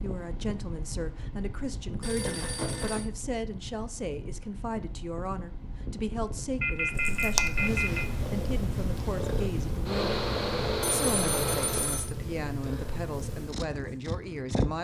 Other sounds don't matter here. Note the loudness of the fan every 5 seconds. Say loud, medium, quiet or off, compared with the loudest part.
quiet, medium, loud.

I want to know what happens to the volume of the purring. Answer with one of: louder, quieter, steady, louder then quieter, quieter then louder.
quieter.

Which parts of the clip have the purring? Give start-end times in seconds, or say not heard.
6.9-14.7.